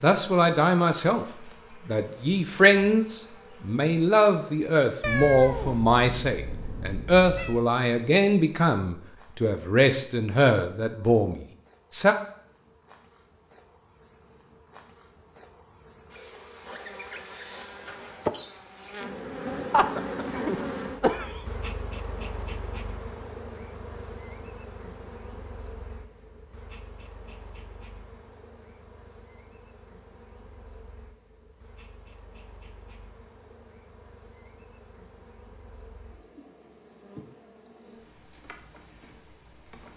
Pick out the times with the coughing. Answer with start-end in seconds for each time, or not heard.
19.7-21.4.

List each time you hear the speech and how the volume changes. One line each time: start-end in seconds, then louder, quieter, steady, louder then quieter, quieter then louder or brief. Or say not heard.
0.0-1.2 brief
1.9-12.2 steady.